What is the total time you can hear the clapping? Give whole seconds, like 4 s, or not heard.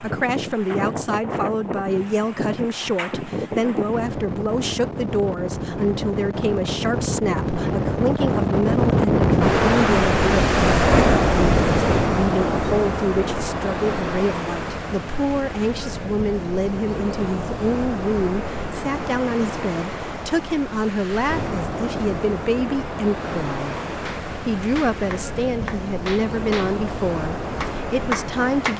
4 s.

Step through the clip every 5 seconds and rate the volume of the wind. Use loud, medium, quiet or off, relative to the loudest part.
medium, loud, loud, medium, medium, medium.